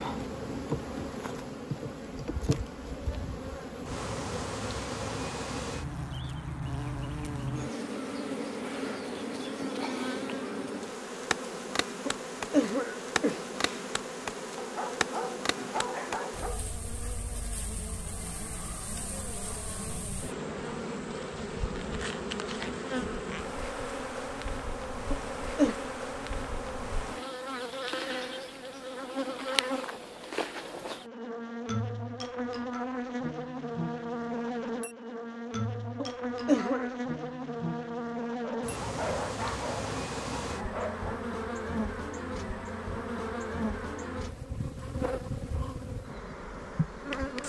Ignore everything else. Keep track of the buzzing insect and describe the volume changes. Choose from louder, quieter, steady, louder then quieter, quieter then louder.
steady.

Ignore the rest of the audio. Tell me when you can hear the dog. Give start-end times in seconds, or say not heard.
14.6-16.6, 38.4-41.2.